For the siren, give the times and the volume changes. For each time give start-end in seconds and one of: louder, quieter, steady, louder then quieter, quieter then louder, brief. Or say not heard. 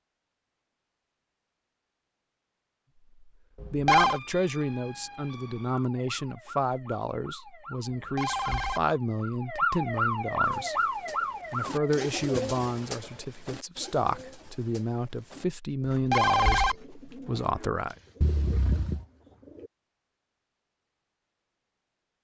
4.0-11.9 louder.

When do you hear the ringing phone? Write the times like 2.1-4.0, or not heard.
3.6-4.2, 7.9-8.8, 15.9-16.8.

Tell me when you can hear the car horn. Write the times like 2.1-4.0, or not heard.
18.2-19.1.